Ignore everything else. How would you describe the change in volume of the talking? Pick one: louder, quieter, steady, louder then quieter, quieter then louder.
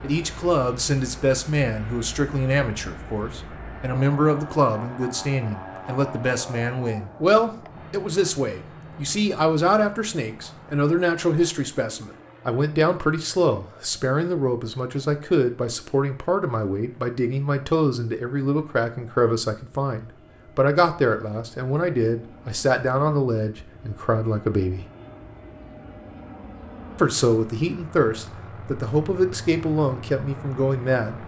steady.